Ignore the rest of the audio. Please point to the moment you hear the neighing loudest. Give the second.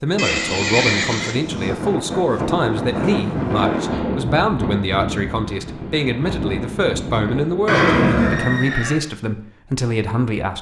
8 s.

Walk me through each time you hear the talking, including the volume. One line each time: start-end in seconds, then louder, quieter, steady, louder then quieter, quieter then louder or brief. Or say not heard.
0.0-10.5 steady.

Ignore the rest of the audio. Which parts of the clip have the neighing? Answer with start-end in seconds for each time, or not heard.
0.1-1.4, 7.7-9.0.